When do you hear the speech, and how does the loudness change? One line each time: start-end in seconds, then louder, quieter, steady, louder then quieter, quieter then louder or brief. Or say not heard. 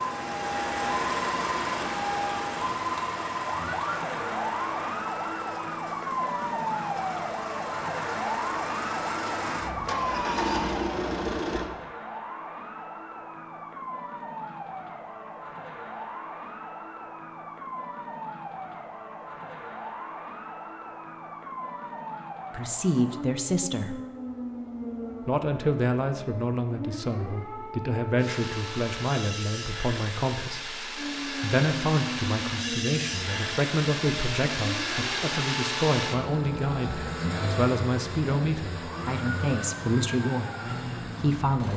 22.5-23.9 brief
25.2-41.7 steady.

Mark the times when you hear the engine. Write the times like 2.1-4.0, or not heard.
0.0-11.7, 28.1-41.7.